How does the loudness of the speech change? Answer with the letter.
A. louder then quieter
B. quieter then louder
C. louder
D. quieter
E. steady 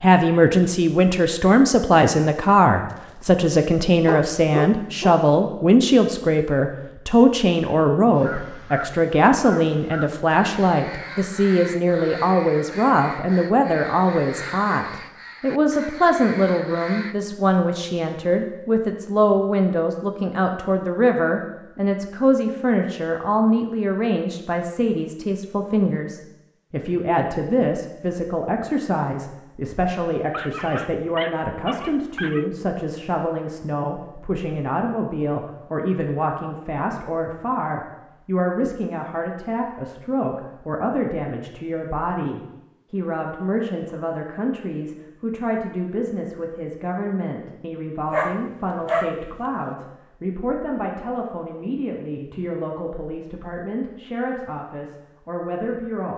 D.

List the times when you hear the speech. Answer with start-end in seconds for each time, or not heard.
0.0-56.1.